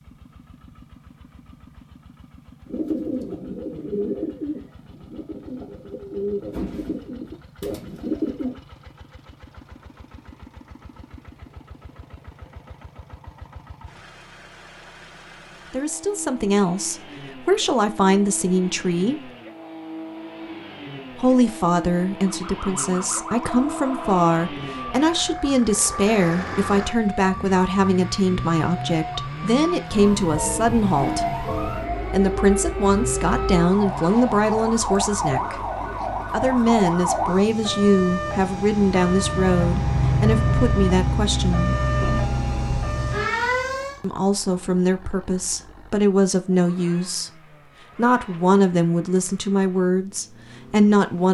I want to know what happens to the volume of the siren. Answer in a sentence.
The loudness of the siren goes up.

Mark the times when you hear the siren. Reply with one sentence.
The siren can be heard from 22.3 to 44.0 s.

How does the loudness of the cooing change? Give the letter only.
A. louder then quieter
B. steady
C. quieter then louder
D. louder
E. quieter
C.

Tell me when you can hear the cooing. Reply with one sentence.
You can hear the cooing from 2.6 to 8.6 s.